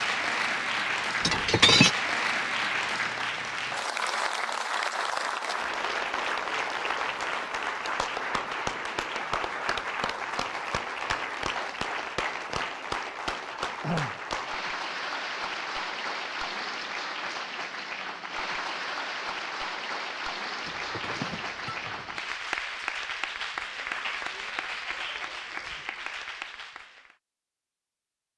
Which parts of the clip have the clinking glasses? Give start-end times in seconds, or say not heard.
1.2-1.9, 20.6-22.2.